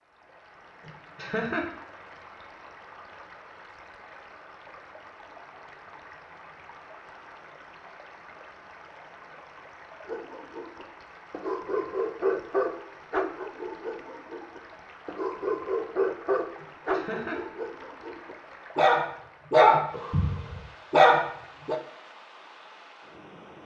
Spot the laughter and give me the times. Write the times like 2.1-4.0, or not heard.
0.8-1.6, 16.6-17.4.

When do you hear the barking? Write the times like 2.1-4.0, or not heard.
10.1-21.8.